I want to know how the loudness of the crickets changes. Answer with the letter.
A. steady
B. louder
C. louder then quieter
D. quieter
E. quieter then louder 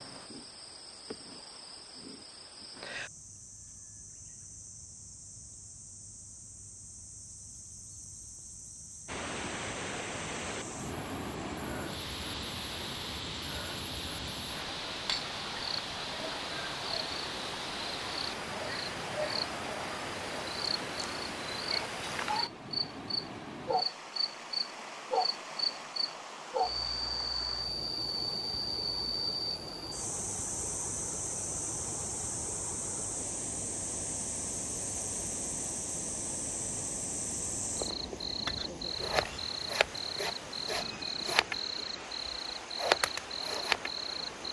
B.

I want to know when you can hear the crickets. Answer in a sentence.
The crickets can be heard from 0.0 to 44.4 s.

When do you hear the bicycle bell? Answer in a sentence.
You can't hear the bicycle bell here.